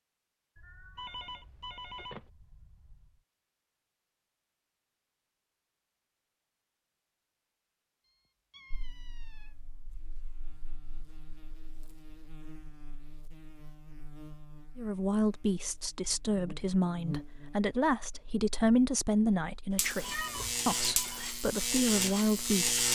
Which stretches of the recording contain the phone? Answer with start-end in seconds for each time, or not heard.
0.9-2.2, 20.0-21.2.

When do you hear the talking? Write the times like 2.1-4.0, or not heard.
14.8-22.8.